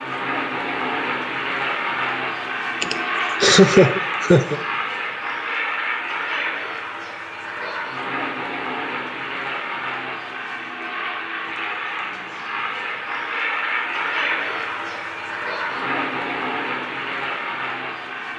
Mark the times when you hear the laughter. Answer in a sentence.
The laughter can be heard from 2.8 to 4.6 s.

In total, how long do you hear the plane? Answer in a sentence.
The plane can be heard for 18 seconds in total.